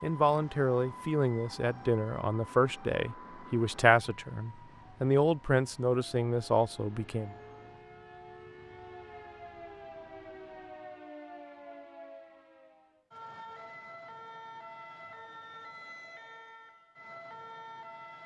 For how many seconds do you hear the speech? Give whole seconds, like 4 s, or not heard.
7 s.